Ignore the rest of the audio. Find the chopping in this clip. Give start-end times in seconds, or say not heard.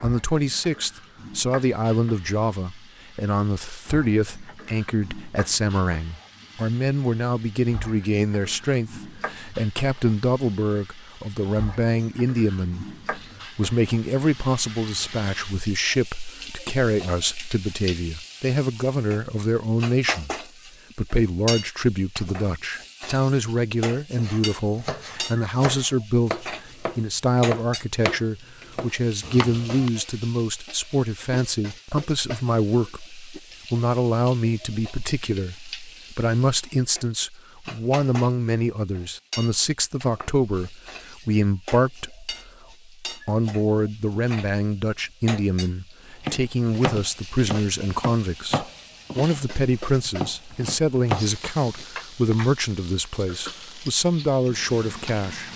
24.1-29.9, 46.2-51.9.